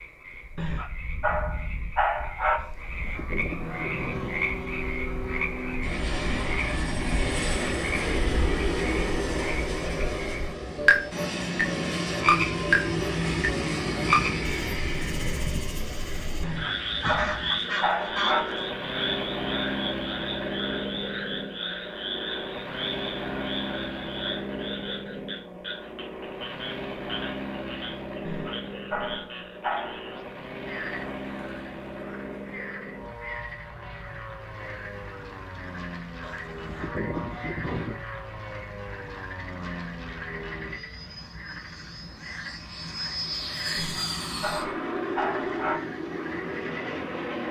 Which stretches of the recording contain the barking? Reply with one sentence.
The barking can be heard from 0.6 to 2.6 s, from 16.4 to 18.4 s, from 28.2 to 30.1 s and from 43.8 to 45.8 s.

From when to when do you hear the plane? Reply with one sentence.
The plane can be heard from 3.5 to 47.4 s.